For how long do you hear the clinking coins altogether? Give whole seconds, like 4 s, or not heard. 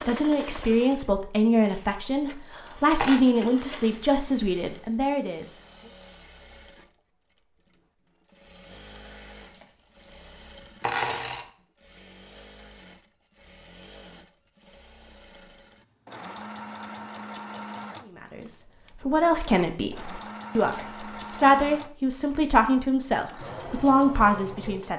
4 s.